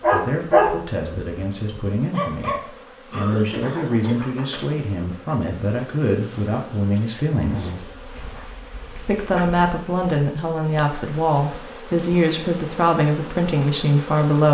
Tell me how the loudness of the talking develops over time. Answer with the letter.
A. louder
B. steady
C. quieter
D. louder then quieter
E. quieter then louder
A.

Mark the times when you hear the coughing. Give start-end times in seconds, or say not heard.
3.1-4.8.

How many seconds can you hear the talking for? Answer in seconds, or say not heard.
13 s.